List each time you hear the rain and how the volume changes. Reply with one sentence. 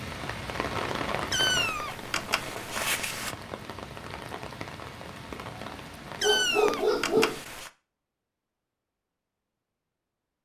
The rain can be heard from 0.0 to 6.3 s, getting quieter.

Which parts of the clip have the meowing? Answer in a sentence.
You can hear the meowing from 1.3 to 3.4 s and from 6.2 to 7.7 s.